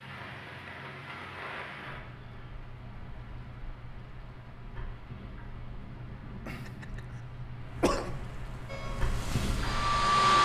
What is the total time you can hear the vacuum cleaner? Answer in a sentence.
The vacuum cleaner can be heard for 2 seconds in total.